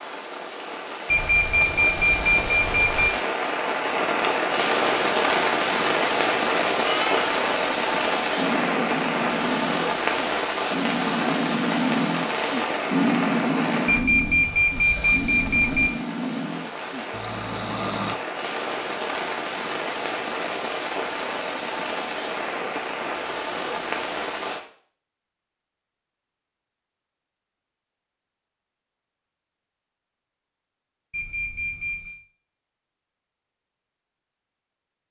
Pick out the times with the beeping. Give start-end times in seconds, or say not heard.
1.1-3.1, 13.8-15.9, 31.1-32.2.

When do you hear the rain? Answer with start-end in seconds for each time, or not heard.
0.0-24.6.